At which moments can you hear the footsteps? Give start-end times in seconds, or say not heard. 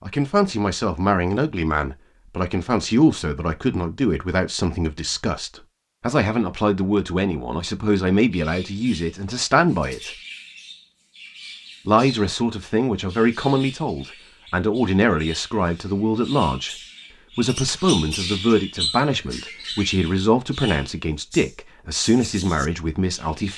not heard.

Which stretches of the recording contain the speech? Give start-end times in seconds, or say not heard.
0.0-10.1, 11.8-16.8, 17.4-23.5.